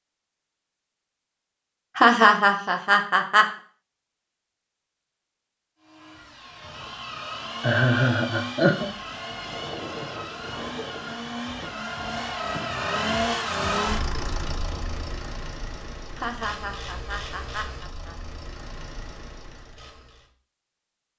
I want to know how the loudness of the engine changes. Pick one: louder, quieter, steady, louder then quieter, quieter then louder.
louder then quieter.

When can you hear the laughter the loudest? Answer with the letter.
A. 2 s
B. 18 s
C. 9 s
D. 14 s
A.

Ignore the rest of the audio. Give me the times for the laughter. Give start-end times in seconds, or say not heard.
1.9-3.5, 7.6-8.9, 16.1-18.1.